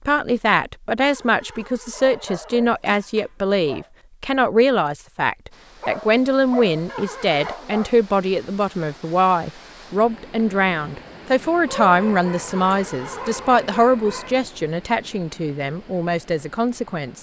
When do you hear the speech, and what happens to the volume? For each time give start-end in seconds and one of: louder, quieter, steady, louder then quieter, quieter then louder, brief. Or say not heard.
0.1-17.1 steady.